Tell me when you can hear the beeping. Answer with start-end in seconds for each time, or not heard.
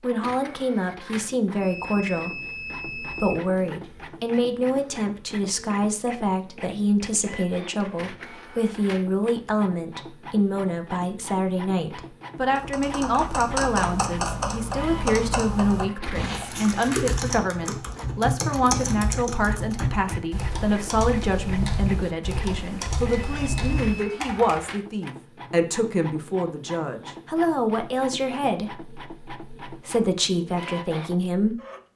1.6-3.4, 23.2-24.1.